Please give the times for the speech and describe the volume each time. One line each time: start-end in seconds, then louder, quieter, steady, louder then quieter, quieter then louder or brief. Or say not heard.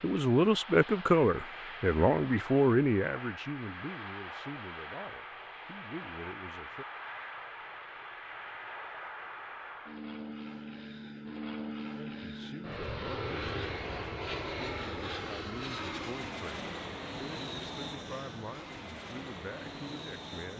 0.0-6.8 quieter
11.9-20.5 steady.